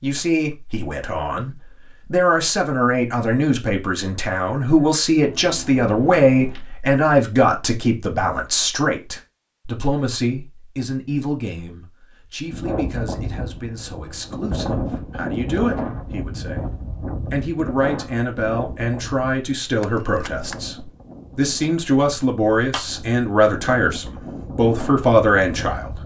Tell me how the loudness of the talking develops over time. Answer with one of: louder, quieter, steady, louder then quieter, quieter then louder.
quieter then louder.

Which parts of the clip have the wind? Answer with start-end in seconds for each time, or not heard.
12.4-26.0.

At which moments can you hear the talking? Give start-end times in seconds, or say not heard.
0.0-26.0.